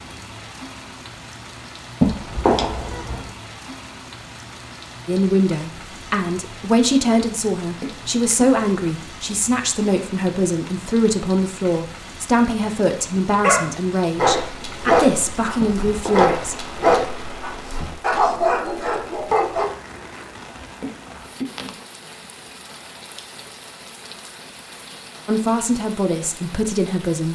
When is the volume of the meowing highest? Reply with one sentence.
The loudest moment of the meowing is at 2 seconds.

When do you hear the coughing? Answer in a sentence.
The coughing can be heard from 7.8 to 8.7 s and from 20.8 to 21.7 s.